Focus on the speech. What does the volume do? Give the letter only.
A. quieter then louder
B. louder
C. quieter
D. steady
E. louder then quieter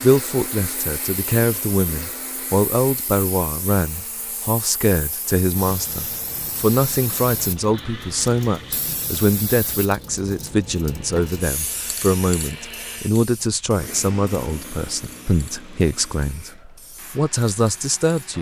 D.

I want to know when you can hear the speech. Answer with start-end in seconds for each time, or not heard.
0.0-18.3.